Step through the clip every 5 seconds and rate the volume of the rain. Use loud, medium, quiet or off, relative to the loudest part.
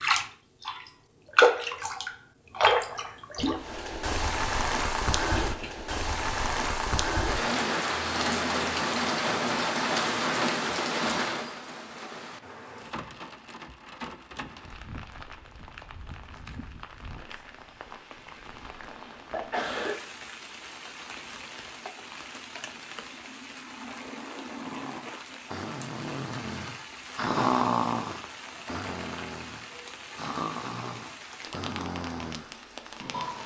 loud, loud, medium, quiet, quiet, quiet, quiet.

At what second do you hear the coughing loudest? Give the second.
20 s.